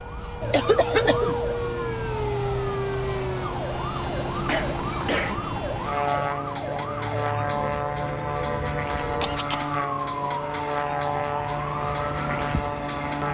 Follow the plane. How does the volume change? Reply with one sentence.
The volume of the plane stays about the same.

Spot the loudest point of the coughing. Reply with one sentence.
The loudest moment of the coughing is at 1 second.